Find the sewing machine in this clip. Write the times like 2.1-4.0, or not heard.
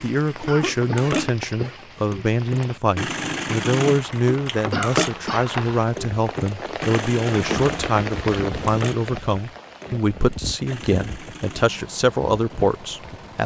0.2-13.4.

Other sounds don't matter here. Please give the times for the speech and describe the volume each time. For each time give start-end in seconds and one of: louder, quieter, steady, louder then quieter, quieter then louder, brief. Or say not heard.
0.0-13.4 steady.